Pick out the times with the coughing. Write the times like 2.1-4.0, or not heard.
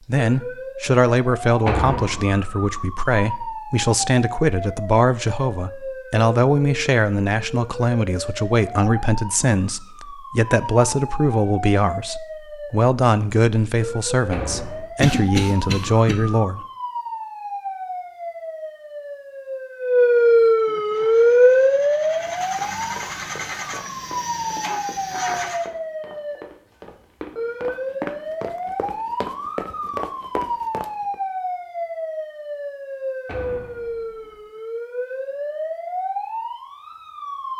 15.0-16.1.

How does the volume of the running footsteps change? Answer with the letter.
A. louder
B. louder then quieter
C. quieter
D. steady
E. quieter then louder
A.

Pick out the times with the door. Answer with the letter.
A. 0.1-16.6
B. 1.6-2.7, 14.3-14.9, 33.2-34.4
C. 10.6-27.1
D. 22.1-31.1
B.